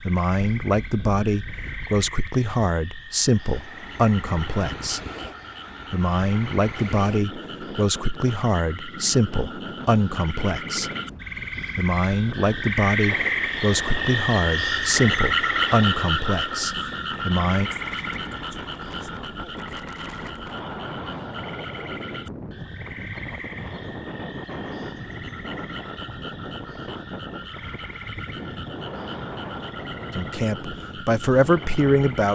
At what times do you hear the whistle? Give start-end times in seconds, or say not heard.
not heard.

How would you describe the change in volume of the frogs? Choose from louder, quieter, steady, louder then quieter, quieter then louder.
louder then quieter.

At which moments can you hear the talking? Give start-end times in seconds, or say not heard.
0.1-5.0, 5.9-10.9, 11.8-17.7, 30.1-32.3.